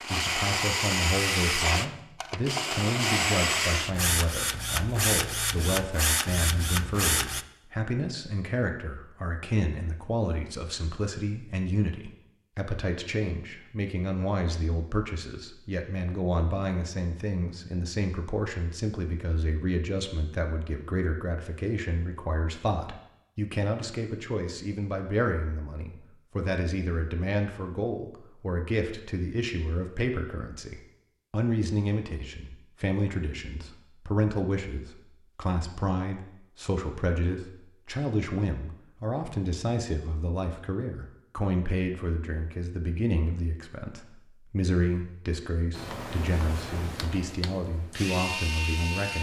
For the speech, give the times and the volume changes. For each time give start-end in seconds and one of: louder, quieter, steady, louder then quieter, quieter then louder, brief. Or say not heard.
0.1-49.1 steady.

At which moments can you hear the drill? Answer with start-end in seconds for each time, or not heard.
0.0-7.5, 45.8-49.1.